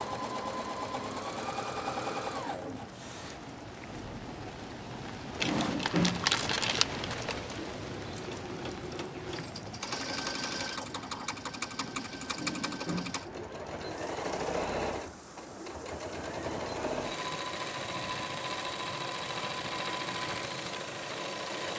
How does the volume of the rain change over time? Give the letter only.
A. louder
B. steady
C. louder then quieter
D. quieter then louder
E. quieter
C.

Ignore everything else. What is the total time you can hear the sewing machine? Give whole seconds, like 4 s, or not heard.
22 s.